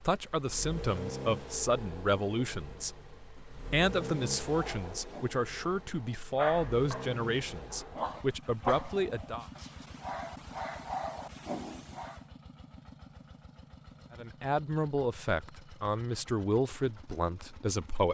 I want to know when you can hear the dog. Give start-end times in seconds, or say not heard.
4.5-12.2.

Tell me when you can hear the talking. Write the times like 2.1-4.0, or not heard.
0.0-9.4, 14.1-18.1.